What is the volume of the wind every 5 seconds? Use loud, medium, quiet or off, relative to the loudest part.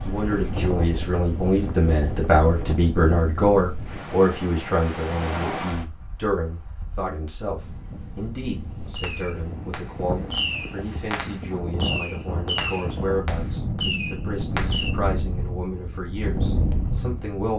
loud, medium, loud, loud.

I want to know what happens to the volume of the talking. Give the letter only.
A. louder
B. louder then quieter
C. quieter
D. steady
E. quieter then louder
C.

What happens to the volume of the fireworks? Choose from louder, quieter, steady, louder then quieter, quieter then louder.
louder.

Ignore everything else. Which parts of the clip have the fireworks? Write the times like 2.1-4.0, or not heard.
8.9-14.9.